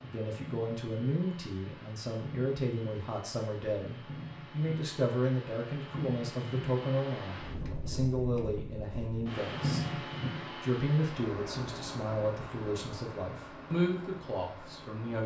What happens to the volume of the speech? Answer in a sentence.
The loudness of the speech stays about the same.